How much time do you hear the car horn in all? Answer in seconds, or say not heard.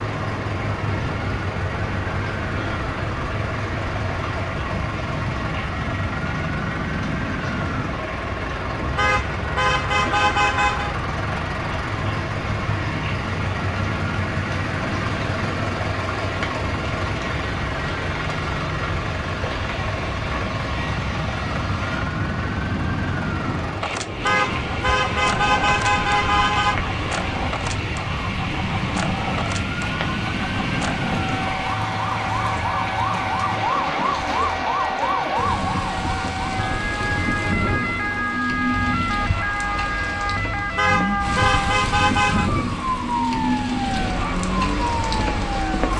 6 s.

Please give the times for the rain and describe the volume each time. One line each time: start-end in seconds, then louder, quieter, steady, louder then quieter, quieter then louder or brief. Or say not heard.
0.0-45.9 louder.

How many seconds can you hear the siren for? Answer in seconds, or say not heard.
46 s.